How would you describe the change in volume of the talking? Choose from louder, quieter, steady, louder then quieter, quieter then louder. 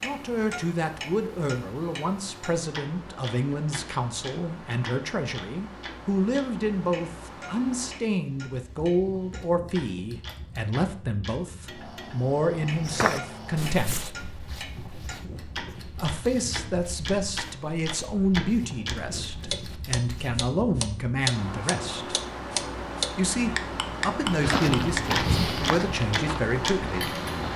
steady.